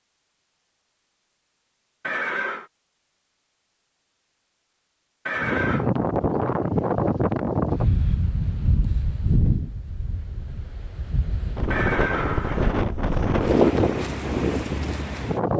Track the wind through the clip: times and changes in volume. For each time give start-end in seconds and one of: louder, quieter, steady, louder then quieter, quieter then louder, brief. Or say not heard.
5.3-15.5 quieter then louder.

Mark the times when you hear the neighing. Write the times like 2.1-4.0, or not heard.
2.0-2.7, 5.2-5.8, 11.7-12.8.